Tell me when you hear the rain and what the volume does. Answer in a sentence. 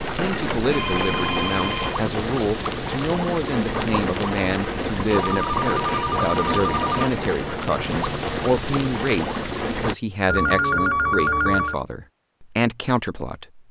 You can hear the rain from 0.0 to 9.9 s, at a steady volume.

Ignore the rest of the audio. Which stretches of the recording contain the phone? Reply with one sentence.
You can hear the phone from 0.5 to 2.5 s, from 5.1 to 7.1 s and from 10.2 to 11.8 s.